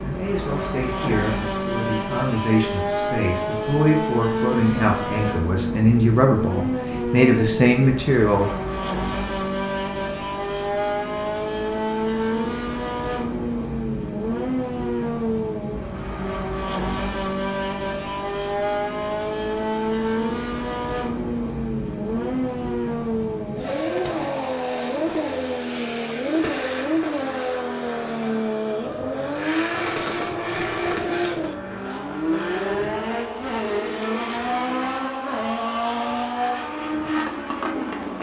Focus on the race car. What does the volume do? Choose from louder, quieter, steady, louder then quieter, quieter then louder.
steady.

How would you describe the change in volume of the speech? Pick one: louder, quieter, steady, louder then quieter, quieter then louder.
louder.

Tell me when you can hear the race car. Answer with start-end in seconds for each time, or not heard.
0.0-38.1.